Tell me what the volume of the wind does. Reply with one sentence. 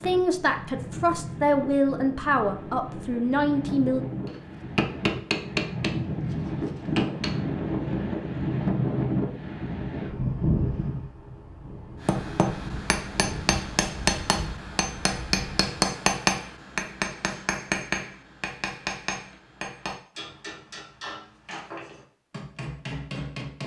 The loudness of the wind goes up, then down.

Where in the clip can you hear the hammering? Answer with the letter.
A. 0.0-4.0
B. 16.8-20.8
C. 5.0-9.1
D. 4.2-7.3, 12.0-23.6
D.